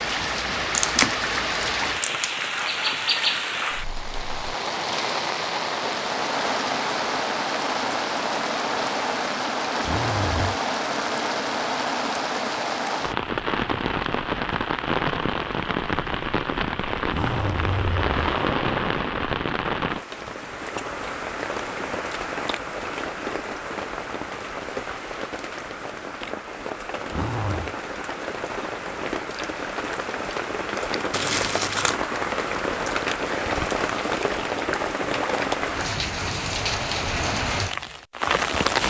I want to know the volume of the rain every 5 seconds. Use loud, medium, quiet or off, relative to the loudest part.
loud, loud, loud, loud, medium, medium, loud, loud.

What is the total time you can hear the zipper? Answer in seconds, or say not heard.
3 s.